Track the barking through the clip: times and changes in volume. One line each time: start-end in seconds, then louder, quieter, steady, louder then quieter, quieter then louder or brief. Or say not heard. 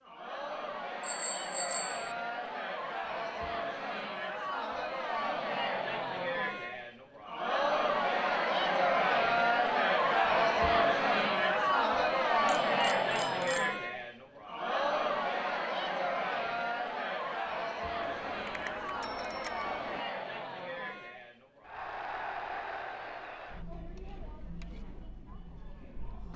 not heard.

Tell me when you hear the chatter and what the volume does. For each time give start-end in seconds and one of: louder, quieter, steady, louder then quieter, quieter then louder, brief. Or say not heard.
0.0-26.3 louder then quieter.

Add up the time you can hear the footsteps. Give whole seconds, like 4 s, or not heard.
not heard.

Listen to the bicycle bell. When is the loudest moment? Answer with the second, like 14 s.
2 s.